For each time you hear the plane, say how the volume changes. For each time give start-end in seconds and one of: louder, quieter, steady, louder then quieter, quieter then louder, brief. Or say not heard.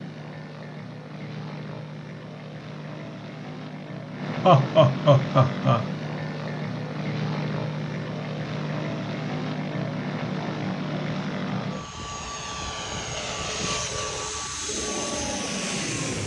0.0-16.2 louder.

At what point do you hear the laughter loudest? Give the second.
5 s.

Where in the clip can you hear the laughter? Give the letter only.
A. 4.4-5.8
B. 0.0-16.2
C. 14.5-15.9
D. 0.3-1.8
A.